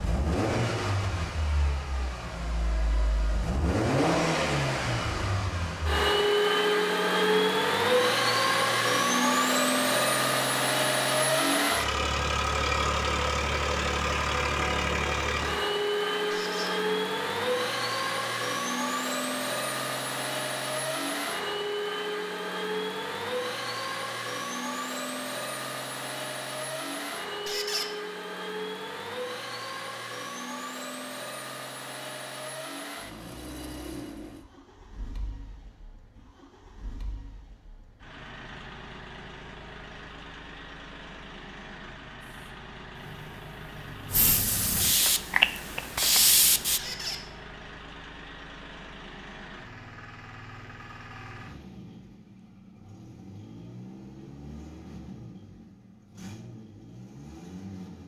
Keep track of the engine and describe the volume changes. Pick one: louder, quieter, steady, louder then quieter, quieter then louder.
quieter.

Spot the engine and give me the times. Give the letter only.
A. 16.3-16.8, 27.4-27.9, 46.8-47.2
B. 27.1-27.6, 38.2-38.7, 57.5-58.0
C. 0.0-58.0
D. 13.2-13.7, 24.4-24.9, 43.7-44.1
C.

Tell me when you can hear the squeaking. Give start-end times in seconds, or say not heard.
16.3-16.8, 27.4-27.9, 46.8-47.2.